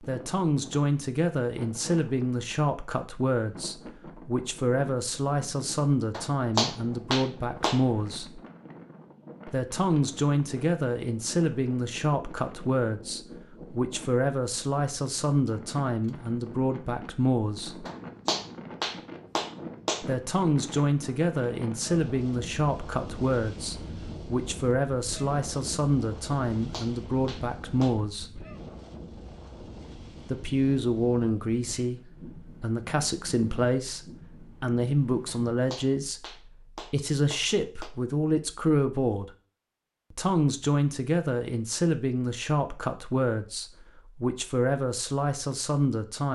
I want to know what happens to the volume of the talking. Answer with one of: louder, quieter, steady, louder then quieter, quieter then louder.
steady.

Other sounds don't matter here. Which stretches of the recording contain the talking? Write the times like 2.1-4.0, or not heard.
0.1-8.4, 9.4-17.9, 20.0-28.4, 30.2-39.3, 40.1-46.3.